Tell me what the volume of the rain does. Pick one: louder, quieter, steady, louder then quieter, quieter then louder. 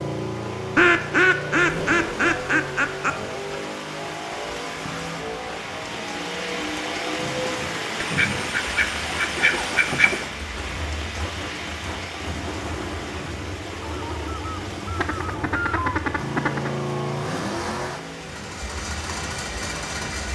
louder then quieter.